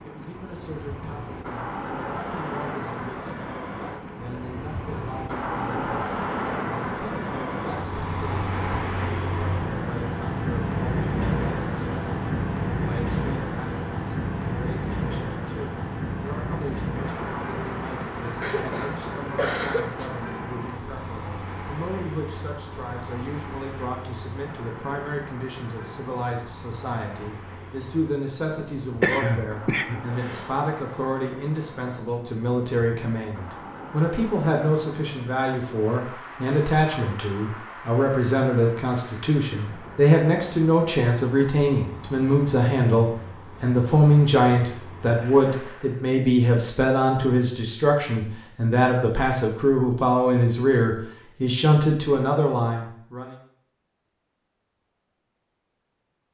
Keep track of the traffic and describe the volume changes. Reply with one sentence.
The loudness of the traffic goes down.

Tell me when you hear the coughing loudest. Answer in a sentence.
The loudest moment of the coughing is at 29 seconds.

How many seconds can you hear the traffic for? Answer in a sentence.
You can hear the traffic for 46 seconds altogether.